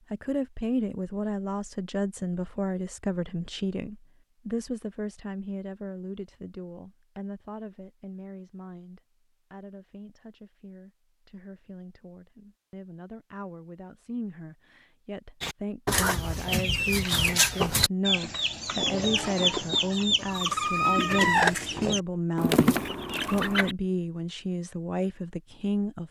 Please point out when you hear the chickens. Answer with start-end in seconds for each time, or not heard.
15.4-23.8.